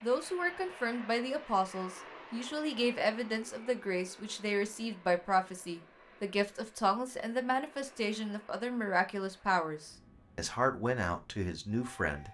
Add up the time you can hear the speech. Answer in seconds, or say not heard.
12 s.